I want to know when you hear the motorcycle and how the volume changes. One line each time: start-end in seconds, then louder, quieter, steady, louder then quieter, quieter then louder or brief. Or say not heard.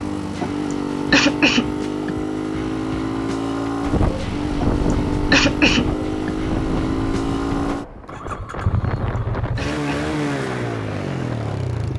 0.0-11.9 steady.